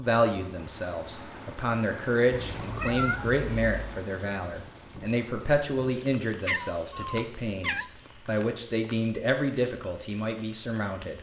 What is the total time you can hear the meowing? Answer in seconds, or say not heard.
3 s.